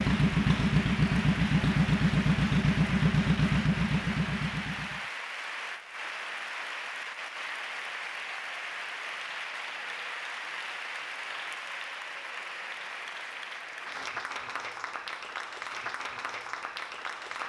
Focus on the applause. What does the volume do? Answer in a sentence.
The loudness of the applause stays about the same.